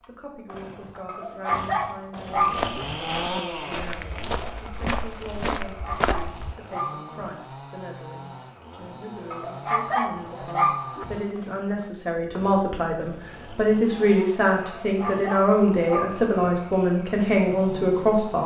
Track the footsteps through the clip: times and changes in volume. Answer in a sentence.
The footsteps can be heard from 2.4 to 6.5 s, getting louder.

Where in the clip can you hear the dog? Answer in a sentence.
The dog can be heard from 1.1 to 3.0 s, from 5.7 to 7.2 s, from 9.3 to 11.2 s and from 14.8 to 16.4 s.